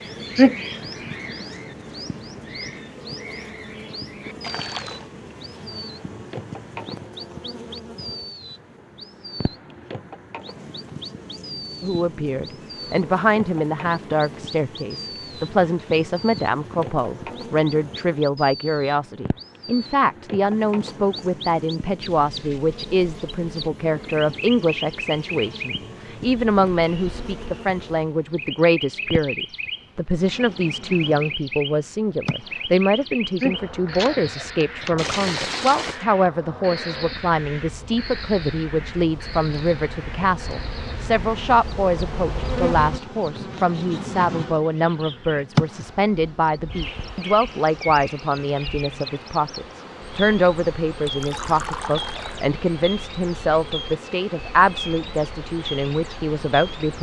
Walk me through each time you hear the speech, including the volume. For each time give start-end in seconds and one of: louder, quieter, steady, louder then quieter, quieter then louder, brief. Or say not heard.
11.8-56.9 steady.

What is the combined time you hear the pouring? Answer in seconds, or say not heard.
3 s.